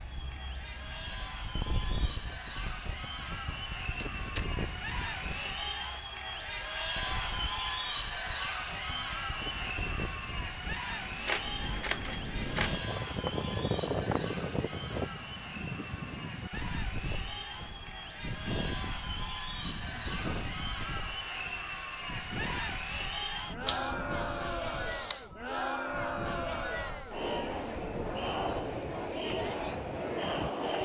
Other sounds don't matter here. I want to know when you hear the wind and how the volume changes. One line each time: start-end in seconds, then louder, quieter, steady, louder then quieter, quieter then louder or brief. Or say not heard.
0.0-30.8 louder then quieter.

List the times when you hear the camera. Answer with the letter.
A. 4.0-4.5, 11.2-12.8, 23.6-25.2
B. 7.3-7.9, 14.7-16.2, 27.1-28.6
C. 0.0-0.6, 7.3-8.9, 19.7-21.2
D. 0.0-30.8
A.